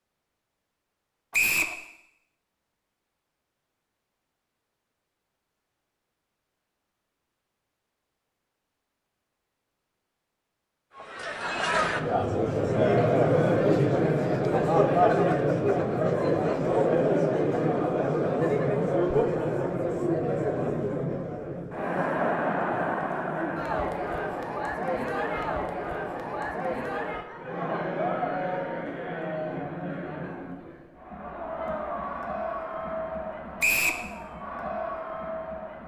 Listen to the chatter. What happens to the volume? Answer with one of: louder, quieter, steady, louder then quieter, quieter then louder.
quieter.